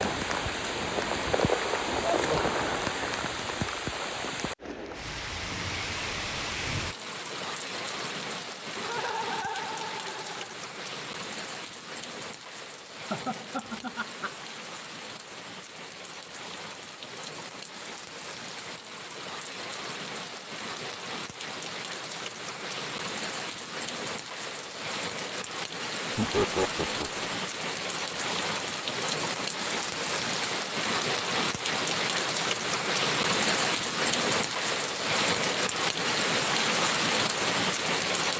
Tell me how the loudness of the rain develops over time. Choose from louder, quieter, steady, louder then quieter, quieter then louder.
quieter then louder.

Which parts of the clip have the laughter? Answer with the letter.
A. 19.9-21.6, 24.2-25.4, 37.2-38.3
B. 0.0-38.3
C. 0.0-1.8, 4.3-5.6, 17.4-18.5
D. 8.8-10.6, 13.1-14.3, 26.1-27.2
D.